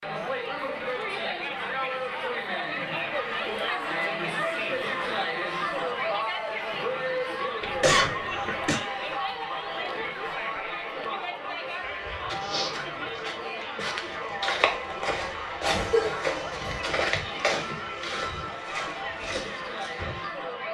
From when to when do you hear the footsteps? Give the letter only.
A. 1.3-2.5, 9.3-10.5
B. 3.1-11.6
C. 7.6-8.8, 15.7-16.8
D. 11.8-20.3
D.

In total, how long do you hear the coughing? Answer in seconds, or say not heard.
2 s.